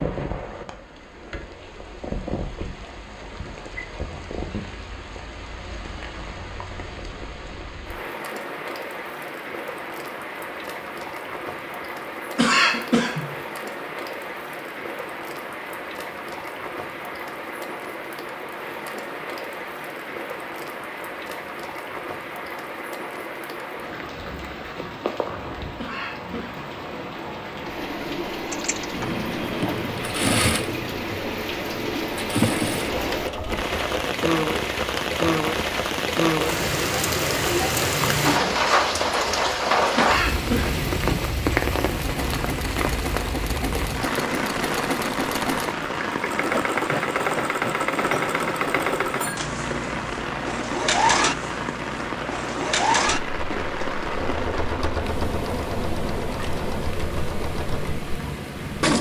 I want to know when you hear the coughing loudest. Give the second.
13 s.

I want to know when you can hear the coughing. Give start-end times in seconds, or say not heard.
12.3-13.3, 25.8-26.8, 40.0-40.8.